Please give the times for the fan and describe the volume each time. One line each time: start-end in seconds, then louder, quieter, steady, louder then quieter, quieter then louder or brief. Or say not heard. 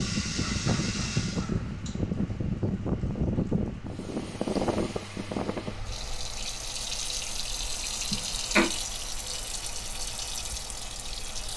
0.0-11.5 quieter.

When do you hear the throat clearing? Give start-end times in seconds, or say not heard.
0.4-1.7, 8.1-8.7.